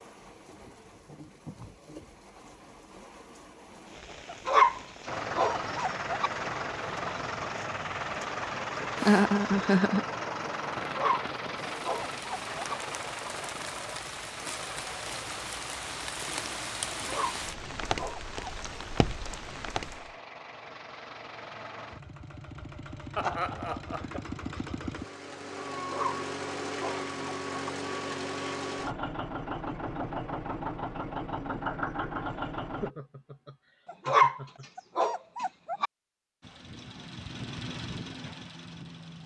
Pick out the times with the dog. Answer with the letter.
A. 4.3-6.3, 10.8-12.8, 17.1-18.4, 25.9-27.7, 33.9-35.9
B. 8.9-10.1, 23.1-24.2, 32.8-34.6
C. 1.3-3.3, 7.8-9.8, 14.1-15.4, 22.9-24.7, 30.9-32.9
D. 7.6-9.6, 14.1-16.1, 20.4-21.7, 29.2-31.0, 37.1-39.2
A.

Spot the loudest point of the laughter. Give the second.
9 s.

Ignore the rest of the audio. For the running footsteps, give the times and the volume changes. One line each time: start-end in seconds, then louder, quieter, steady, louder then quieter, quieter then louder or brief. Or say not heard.
not heard.